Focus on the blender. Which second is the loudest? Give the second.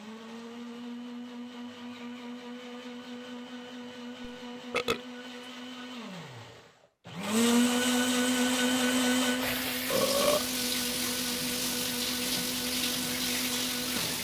8 s.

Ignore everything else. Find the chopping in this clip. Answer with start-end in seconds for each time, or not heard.
not heard.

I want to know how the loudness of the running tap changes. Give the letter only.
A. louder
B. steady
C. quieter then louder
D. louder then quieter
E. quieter
B.